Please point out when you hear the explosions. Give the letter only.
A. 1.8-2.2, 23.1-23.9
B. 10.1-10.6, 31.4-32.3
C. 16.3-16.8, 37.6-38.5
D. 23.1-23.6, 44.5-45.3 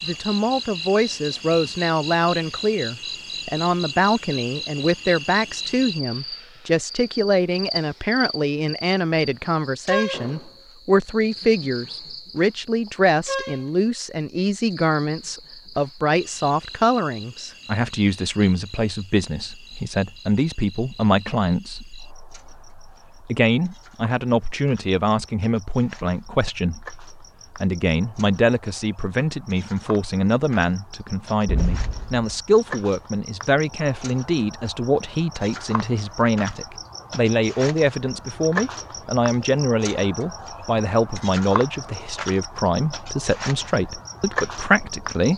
B.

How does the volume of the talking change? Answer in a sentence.
The loudness of the talking stays about the same.